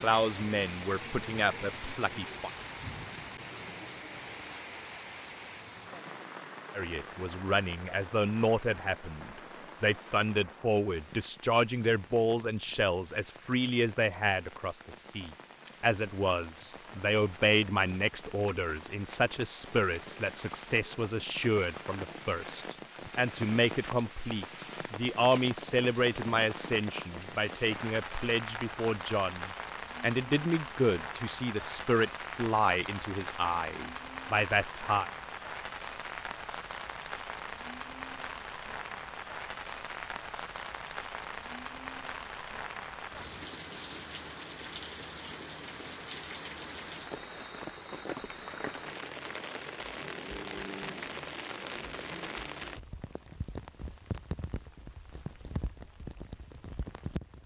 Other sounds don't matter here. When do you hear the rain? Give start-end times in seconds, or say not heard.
0.0-57.4.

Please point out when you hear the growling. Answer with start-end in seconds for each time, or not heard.
50.0-51.1.